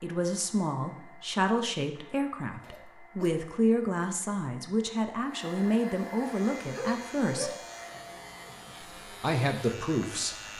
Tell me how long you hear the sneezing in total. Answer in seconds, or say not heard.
2 s.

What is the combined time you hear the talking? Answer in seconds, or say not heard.
9 s.